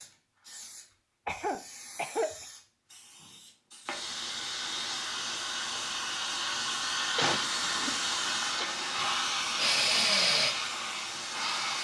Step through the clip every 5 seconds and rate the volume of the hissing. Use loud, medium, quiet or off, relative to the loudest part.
medium, loud, loud.